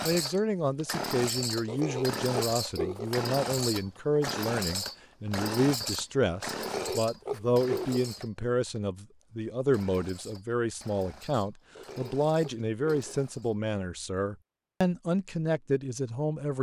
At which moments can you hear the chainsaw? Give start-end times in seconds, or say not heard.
0.0-13.6.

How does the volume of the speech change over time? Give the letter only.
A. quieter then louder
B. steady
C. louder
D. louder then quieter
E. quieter
B.